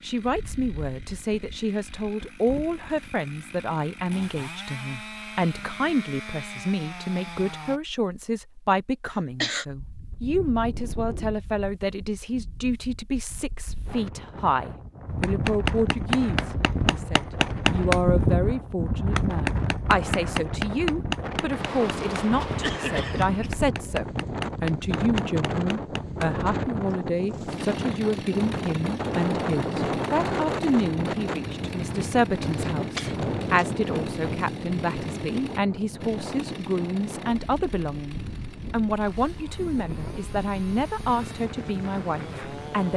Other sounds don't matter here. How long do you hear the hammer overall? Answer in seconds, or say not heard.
12 s.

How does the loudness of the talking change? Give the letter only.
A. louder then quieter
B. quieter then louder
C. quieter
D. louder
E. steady
E.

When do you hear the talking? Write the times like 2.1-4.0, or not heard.
0.0-42.9.